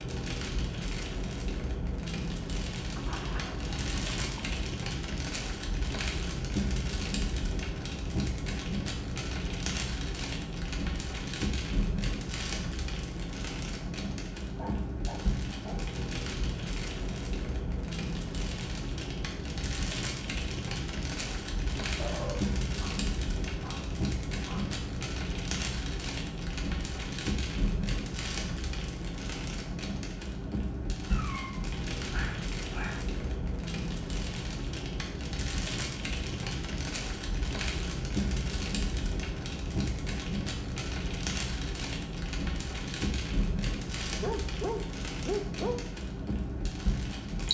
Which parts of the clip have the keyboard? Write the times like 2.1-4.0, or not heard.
not heard.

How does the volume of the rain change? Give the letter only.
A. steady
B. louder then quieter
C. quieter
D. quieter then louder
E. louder
A.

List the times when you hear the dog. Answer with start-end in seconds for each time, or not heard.
3.0-4.6, 14.6-16.0, 21.9-24.8, 31.1-33.0, 44.2-45.8.